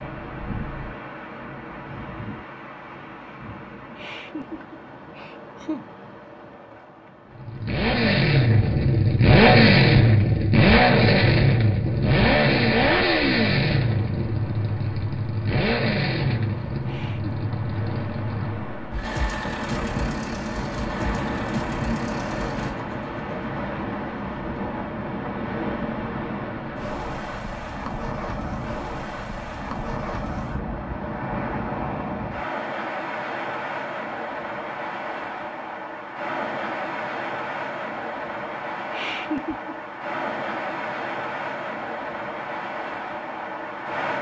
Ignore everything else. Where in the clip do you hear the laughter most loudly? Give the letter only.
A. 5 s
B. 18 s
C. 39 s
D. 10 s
C.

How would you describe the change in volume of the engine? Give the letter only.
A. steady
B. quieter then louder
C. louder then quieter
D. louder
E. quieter
E.